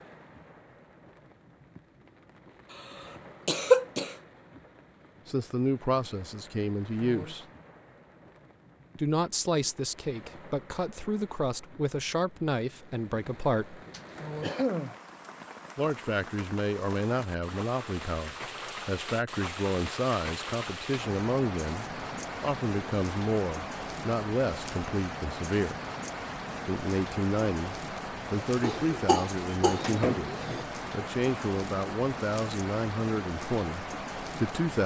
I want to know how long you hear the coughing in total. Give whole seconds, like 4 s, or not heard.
4 s.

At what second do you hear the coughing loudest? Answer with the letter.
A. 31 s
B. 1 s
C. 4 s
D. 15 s
C.